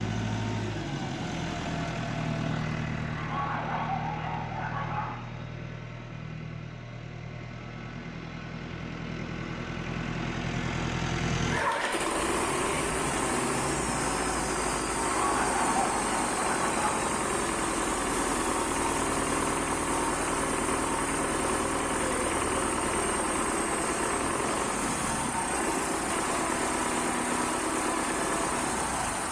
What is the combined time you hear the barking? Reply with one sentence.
You can hear the barking for 4 seconds altogether.